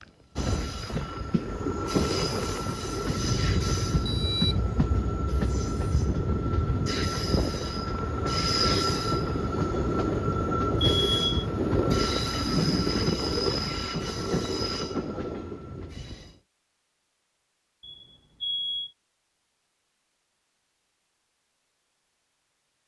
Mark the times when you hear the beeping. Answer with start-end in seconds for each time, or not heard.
4.0-4.6, 10.8-11.4, 17.8-18.9.